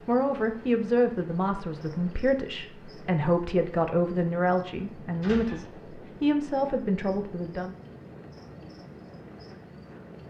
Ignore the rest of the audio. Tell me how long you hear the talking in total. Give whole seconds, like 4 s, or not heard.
8 s.